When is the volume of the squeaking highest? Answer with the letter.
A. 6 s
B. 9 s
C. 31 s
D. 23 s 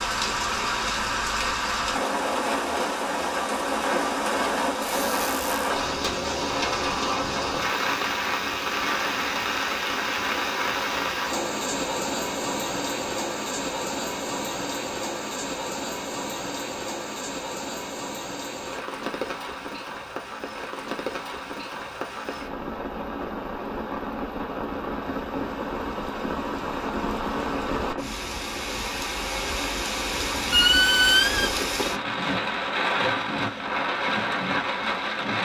C.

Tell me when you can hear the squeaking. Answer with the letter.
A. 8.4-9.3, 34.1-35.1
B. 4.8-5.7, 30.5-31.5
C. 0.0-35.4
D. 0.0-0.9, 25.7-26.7
B.